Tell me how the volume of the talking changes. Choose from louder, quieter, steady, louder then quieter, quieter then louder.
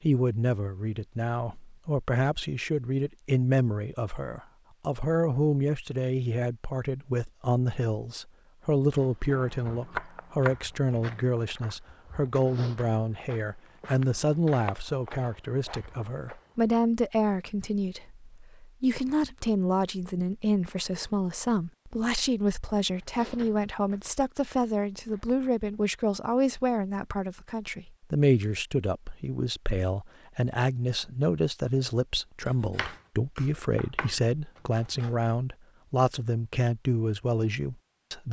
steady.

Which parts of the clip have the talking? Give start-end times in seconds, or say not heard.
0.0-38.2.